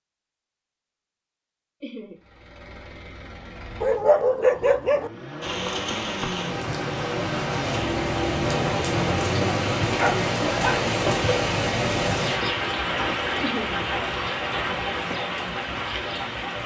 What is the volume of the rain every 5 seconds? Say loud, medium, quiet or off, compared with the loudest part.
off, loud, loud, medium.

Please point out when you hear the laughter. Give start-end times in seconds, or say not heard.
1.8-2.2, 13.4-13.8.